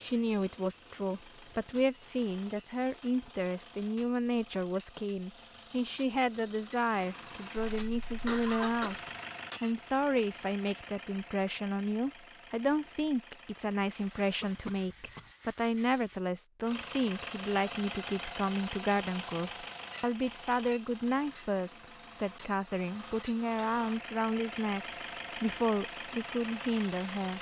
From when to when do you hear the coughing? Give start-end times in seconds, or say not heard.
7.8-9.1, 14.4-15.3.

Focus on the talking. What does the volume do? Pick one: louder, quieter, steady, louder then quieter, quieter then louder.
steady.